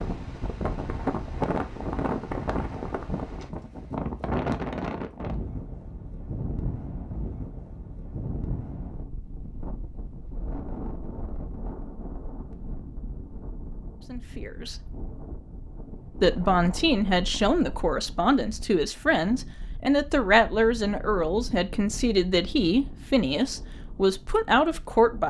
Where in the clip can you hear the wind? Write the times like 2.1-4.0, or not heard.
0.0-25.2.